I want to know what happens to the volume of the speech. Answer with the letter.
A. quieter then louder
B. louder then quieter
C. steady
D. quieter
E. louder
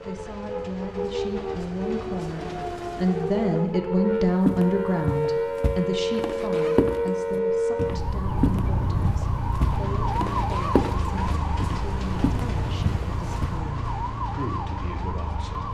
B.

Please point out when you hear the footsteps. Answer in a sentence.
The footsteps can be heard from 4.5 to 13.6 s.